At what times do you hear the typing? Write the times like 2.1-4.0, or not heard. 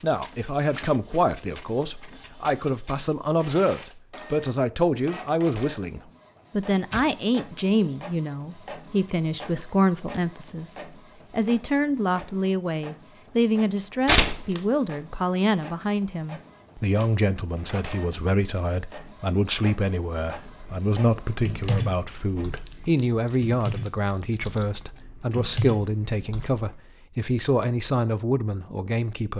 20.4-26.8.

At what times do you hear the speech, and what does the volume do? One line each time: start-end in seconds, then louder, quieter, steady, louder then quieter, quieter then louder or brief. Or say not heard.
0.0-29.3 steady.